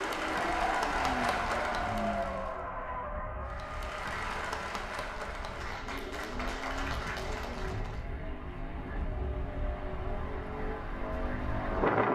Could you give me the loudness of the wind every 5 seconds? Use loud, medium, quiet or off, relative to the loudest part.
quiet, quiet, loud.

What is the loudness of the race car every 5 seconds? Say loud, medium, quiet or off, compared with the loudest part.
loud, medium, loud.